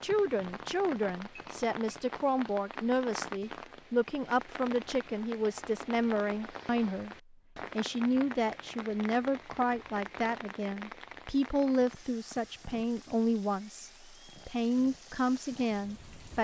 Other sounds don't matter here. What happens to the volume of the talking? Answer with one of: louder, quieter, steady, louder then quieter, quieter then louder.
steady.